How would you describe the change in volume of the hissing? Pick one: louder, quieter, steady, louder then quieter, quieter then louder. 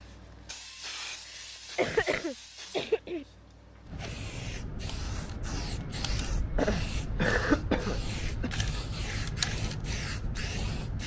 louder.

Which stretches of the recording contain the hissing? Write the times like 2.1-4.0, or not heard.
0.0-11.0.